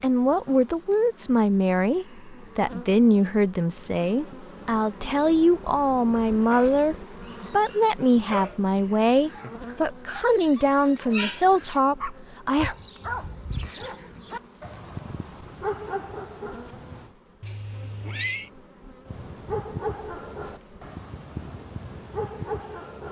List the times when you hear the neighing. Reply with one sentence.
You can hear the neighing from 17.4 to 18.5 s.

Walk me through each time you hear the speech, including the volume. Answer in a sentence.
The speech can be heard from 0.0 to 12.8 s, at a steady volume.